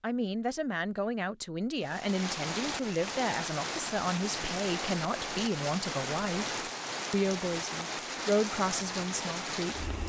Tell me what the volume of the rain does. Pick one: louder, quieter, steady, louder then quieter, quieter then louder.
steady.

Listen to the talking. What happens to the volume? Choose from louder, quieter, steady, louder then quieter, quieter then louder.
steady.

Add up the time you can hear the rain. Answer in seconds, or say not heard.
8 s.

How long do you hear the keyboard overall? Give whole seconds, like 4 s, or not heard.
not heard.